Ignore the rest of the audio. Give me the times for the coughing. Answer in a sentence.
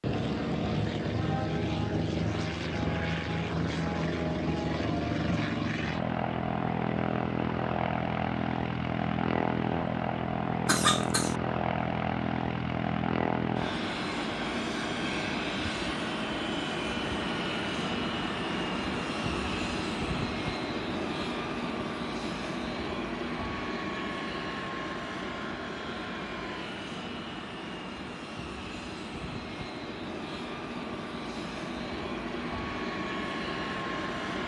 The coughing can be heard from 10.7 to 11.3 s.